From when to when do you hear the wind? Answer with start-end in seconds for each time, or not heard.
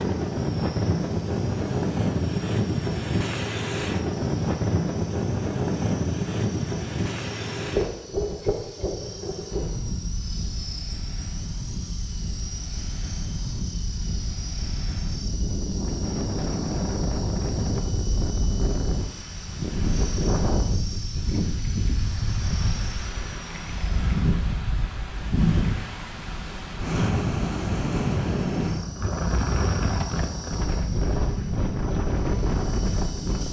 0.0-33.4.